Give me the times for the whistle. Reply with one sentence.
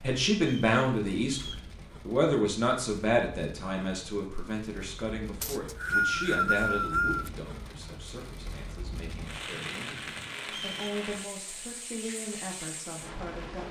You can hear the whistle from 0.4 to 1.6 s, from 5.4 to 7.3 s and from 10.4 to 10.8 s.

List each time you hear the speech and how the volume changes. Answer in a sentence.
You can hear the speech from 0.0 to 13.6 s, getting quieter then louder.